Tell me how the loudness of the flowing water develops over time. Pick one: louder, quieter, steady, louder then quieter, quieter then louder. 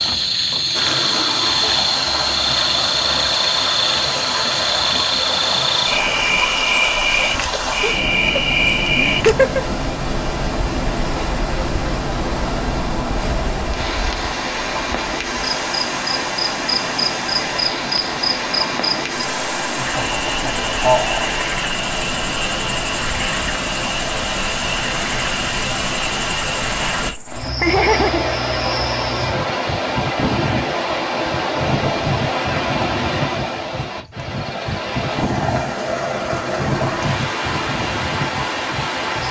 steady.